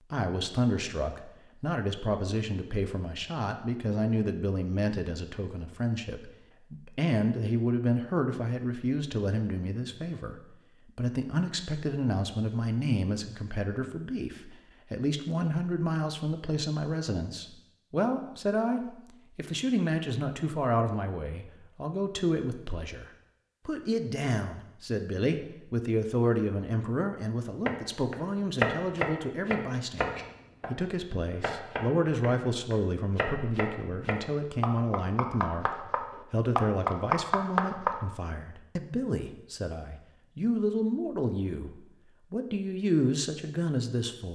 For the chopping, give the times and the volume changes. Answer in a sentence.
The chopping can be heard from 27.6 to 38.0 s, getting quieter then louder.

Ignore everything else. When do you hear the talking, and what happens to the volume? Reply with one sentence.
You can hear the talking from 0.1 to 44.2 s, at a steady volume.